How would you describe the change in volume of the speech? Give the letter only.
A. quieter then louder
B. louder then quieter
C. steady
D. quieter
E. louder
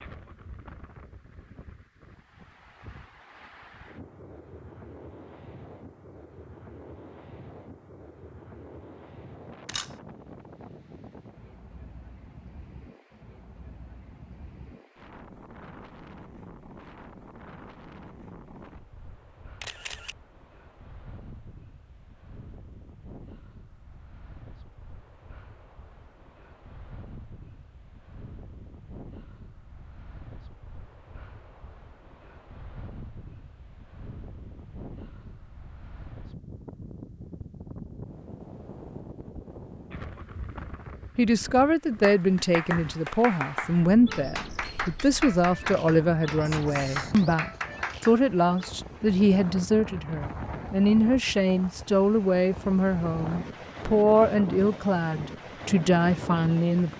C.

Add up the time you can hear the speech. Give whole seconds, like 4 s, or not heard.
16 s.